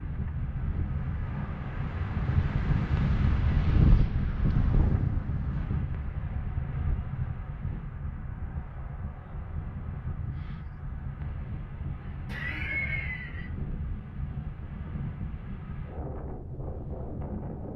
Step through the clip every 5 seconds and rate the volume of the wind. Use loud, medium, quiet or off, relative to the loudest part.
loud, medium, medium, medium.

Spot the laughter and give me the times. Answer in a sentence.
You can hear the laughter from 12.2 to 13.5 s.